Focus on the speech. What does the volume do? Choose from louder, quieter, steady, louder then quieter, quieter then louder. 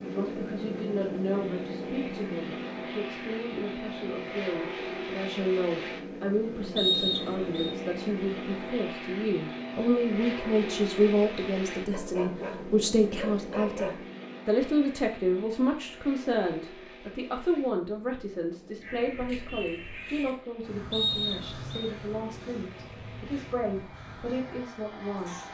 louder then quieter.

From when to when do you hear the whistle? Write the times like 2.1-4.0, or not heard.
6.8-7.7, 20.9-21.9.